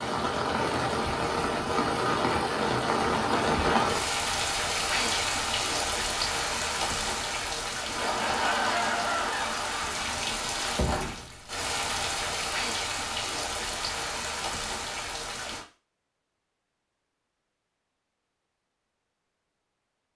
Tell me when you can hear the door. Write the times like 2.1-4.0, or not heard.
9.7-11.2.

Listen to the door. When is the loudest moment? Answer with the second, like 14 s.
11 s.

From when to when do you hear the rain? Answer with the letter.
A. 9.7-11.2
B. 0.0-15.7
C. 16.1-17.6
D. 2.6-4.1
B.